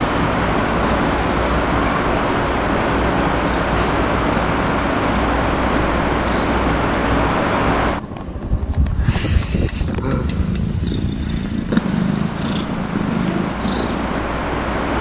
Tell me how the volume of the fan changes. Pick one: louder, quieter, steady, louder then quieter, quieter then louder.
quieter.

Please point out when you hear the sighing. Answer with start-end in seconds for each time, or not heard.
10.0-10.6.